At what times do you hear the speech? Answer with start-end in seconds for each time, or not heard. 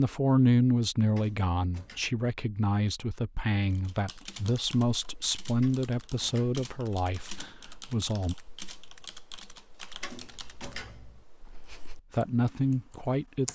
0.0-8.3, 12.1-13.5.